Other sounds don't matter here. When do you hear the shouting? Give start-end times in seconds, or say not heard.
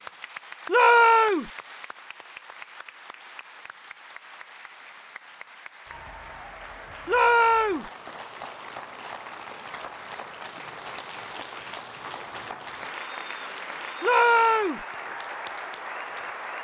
0.7-1.5, 7.0-7.9, 14.0-14.8.